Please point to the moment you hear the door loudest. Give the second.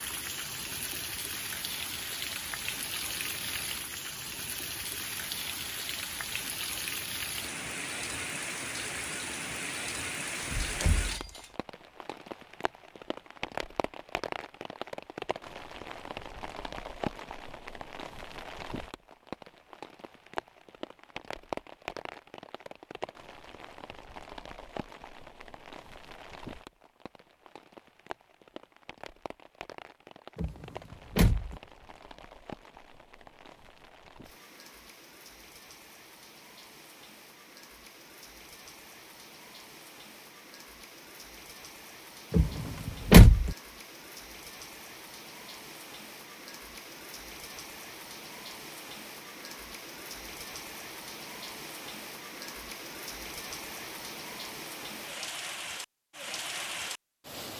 43 s.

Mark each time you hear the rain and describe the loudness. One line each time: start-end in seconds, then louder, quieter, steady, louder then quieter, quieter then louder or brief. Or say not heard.
0.0-57.5 quieter then louder.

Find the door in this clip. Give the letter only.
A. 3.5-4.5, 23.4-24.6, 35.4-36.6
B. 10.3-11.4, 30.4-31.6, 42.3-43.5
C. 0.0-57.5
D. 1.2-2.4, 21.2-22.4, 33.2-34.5
B.